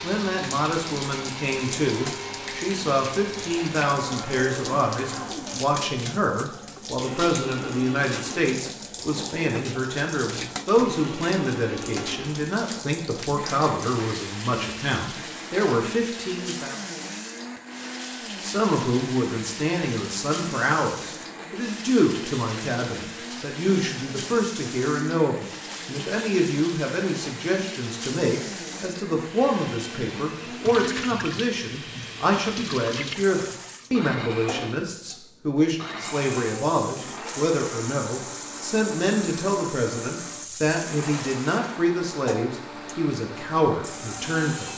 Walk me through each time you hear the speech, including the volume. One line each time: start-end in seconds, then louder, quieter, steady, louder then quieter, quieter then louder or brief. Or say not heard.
0.0-16.8 steady
18.4-44.7 steady.